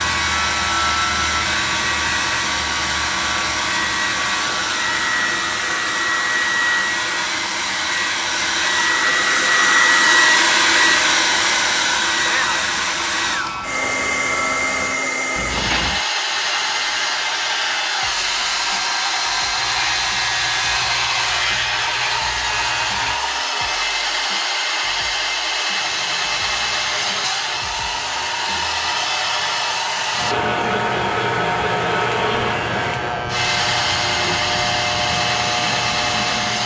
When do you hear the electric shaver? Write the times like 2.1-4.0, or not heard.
0.0-23.2, 25.8-36.6.